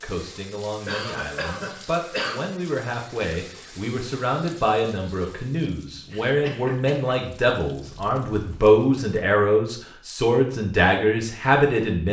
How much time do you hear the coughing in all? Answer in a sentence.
You can hear the coughing for 3 seconds altogether.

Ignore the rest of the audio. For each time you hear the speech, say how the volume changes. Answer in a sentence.
You can hear the speech from 0.0 to 12.0 s, getting louder.